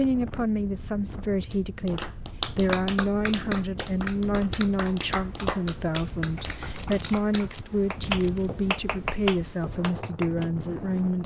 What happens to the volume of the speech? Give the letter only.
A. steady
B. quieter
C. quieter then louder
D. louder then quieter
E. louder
A.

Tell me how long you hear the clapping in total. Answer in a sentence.
You can hear the clapping for 9 seconds altogether.